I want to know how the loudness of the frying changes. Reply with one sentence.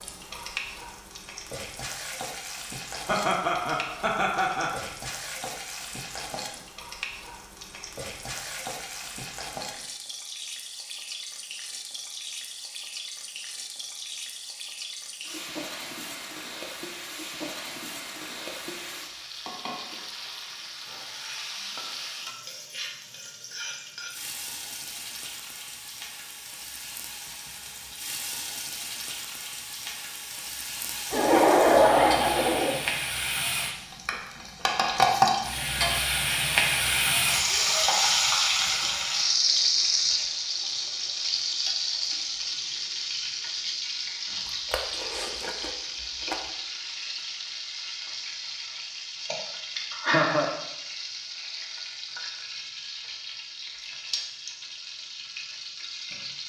The volume of the frying goes up, then down.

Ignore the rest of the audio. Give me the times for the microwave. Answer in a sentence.
You can't hear the microwave here.